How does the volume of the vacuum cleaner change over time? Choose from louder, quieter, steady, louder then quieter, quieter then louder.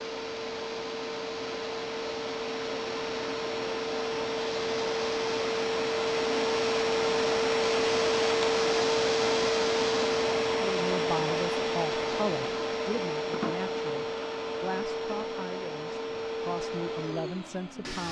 louder then quieter.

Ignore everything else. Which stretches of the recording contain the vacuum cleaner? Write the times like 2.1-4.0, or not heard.
0.0-18.0.